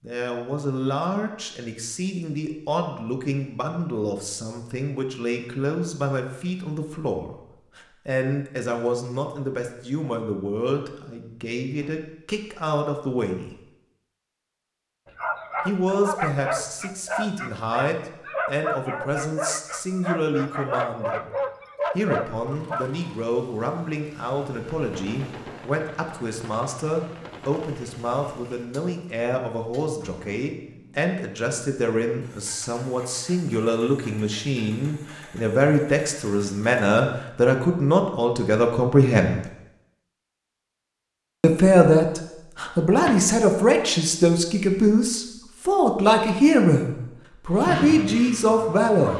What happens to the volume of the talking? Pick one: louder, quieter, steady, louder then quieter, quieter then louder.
louder.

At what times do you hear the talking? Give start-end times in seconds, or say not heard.
0.0-13.6, 15.7-21.3, 21.9-39.4, 41.4-49.1.